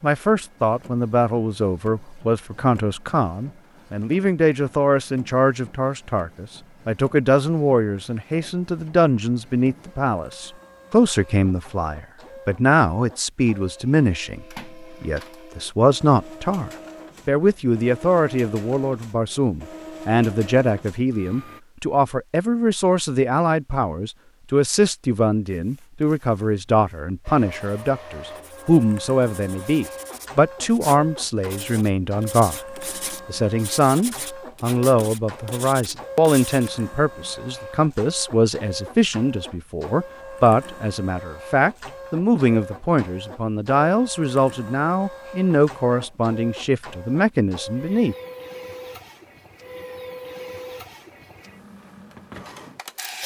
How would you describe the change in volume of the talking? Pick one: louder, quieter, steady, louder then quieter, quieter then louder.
steady.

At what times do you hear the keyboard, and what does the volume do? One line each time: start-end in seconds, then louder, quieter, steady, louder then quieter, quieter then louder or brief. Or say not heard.
not heard.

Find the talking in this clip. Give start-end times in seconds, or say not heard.
0.0-48.1.